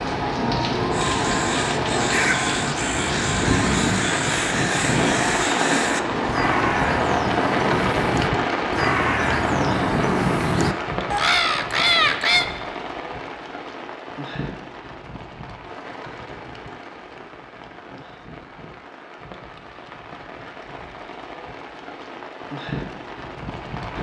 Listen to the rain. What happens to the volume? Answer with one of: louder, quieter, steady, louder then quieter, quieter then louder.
quieter.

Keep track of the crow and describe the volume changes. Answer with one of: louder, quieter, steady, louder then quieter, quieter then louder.
louder.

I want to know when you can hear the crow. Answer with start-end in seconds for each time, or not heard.
0.9-12.4.